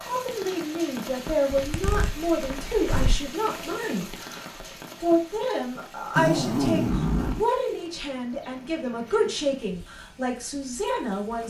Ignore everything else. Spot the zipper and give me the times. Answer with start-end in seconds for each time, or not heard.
1.5-3.3, 6.2-7.5.